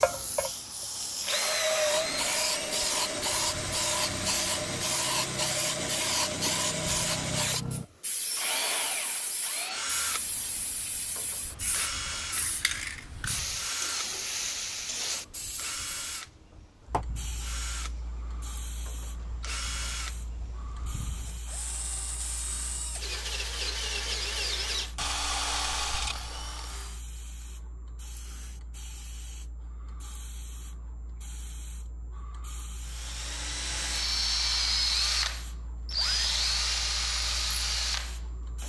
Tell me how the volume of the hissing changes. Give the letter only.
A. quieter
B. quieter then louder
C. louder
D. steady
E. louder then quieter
A.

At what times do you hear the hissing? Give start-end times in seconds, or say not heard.
0.0-38.6.